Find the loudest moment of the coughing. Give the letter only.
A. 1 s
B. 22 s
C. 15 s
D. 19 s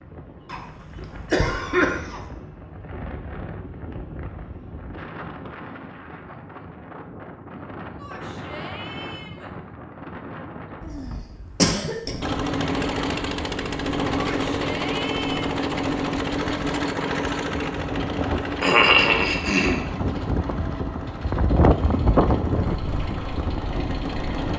D.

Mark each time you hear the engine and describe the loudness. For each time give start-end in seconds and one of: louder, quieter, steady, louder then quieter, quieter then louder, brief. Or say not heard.
12.2-24.5 quieter.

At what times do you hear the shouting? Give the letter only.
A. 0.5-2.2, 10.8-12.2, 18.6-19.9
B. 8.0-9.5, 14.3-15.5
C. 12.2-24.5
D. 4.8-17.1
B.